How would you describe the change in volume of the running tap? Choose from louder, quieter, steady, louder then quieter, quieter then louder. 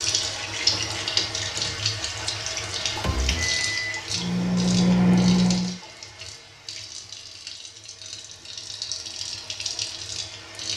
quieter then louder.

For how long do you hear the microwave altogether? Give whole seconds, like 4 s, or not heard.
3 s.